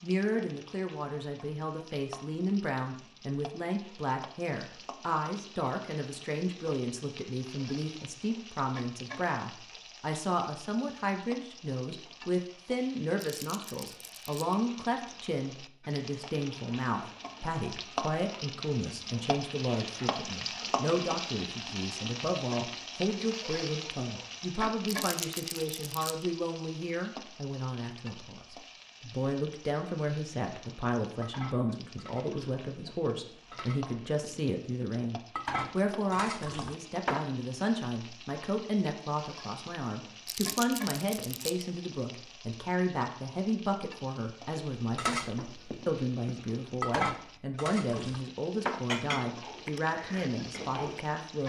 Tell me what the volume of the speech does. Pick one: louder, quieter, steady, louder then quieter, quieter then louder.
steady.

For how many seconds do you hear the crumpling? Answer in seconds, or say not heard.
4 s.